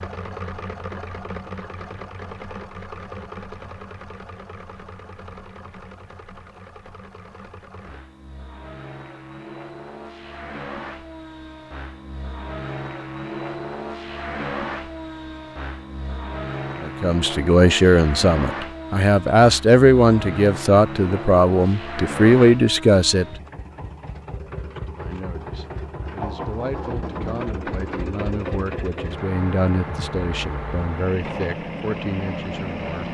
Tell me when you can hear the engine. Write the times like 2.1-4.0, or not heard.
0.0-33.0.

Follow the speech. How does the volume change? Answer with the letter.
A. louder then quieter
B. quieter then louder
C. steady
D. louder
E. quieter
E.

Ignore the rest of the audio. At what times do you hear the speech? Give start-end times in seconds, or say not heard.
16.8-23.2, 24.6-33.0.